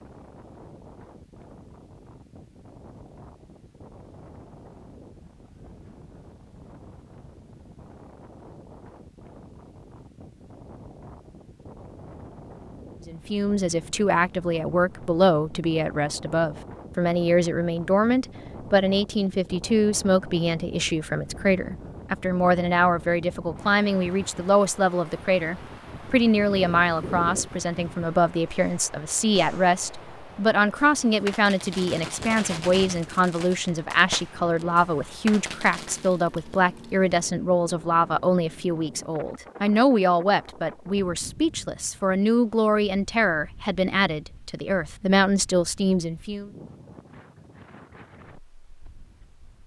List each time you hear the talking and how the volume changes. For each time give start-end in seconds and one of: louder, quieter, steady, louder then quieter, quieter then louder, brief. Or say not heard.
13.1-46.5 steady.